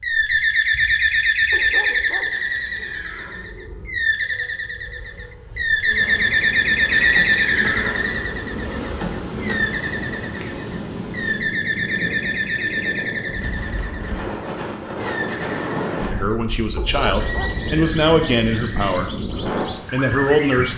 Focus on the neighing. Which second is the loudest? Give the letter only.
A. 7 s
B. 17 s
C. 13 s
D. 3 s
A.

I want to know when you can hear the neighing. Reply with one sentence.
The neighing can be heard from 2.3 to 3.5 s, from 6.9 to 8.3 s and from 17.2 to 19.1 s.